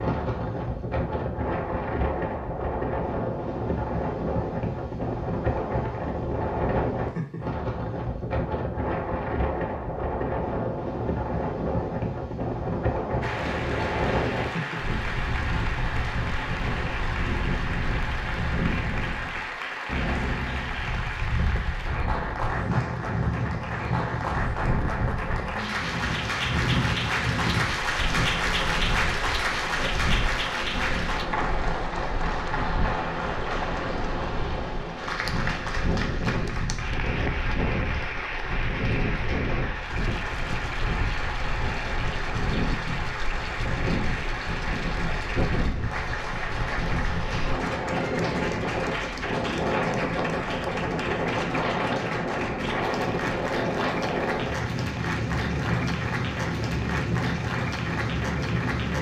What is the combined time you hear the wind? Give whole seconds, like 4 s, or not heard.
59 s.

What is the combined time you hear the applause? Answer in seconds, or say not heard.
46 s.